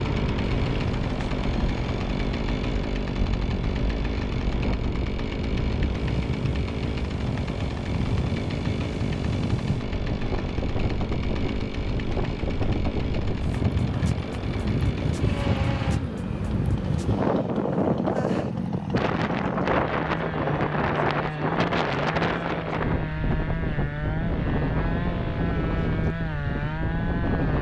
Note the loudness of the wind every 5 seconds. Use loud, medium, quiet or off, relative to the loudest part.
medium, medium, loud, loud, loud, loud.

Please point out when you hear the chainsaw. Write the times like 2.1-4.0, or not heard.
0.0-27.5.